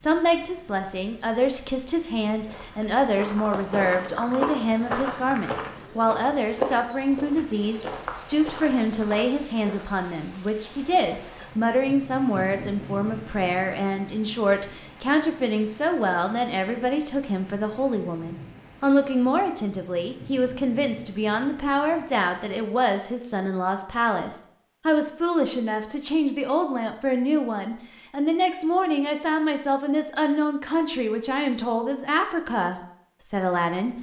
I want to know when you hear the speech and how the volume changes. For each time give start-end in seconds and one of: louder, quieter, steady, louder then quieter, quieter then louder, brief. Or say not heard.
0.0-33.9 steady.